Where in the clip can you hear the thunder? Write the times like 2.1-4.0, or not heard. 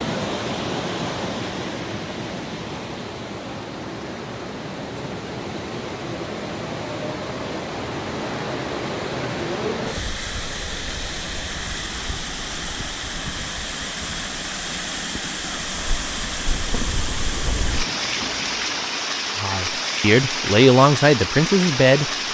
16.5-19.0.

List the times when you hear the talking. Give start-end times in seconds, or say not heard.
19.4-22.3.